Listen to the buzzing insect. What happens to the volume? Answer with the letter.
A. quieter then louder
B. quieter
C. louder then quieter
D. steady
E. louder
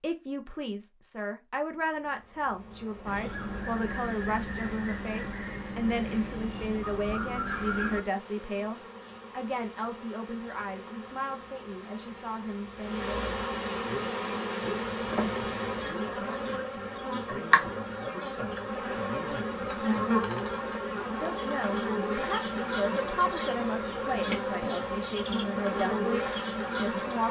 E.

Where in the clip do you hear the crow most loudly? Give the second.
8 s.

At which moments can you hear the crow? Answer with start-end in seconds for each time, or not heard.
3.0-8.0.